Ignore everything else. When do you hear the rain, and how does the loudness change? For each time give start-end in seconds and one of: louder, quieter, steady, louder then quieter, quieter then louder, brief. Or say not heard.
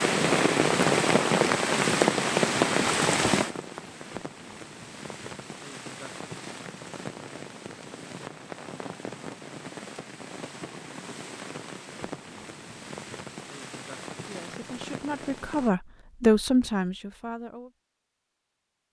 0.0-15.7 quieter.